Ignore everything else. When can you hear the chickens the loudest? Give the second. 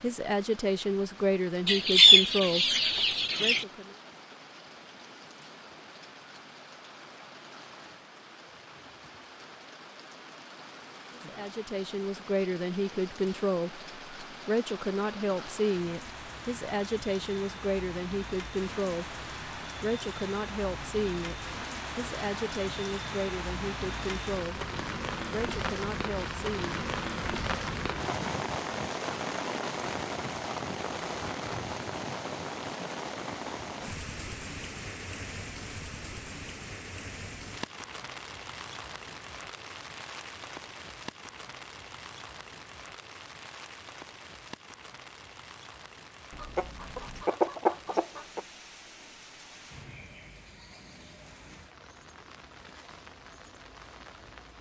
2 s.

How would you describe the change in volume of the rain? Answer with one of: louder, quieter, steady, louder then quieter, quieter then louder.
louder then quieter.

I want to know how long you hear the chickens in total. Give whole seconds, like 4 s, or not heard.
4 s.